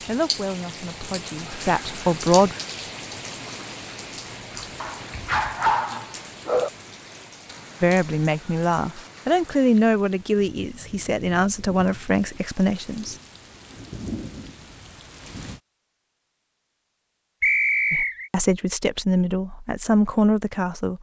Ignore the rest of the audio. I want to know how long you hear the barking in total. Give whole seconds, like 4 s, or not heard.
2 s.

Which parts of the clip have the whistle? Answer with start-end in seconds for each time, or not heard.
17.4-18.3.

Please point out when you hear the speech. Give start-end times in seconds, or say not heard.
0.1-2.5, 7.8-13.2, 17.9-20.9.